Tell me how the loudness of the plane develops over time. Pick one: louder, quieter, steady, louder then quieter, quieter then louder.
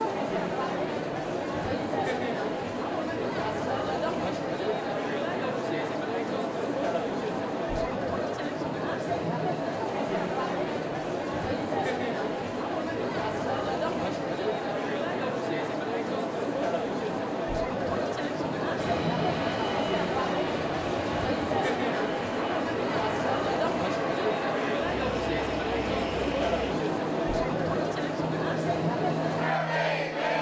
steady.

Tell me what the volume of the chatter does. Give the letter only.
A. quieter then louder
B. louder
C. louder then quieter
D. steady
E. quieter
D.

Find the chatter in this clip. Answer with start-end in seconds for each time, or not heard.
0.0-30.3.